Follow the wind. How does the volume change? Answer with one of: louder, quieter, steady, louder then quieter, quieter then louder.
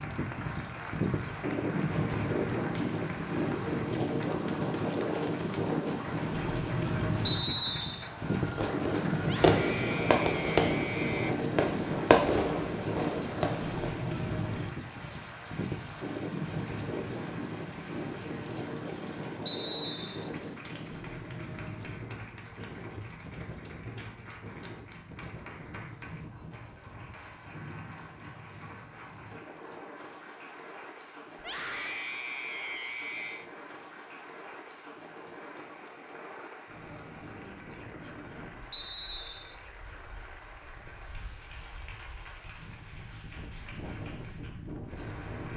quieter.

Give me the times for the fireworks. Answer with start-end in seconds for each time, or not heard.
8.2-13.9.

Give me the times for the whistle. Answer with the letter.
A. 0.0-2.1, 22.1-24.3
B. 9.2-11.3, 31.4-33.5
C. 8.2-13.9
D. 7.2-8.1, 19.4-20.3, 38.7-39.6
D.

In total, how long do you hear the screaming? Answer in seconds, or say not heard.
4 s.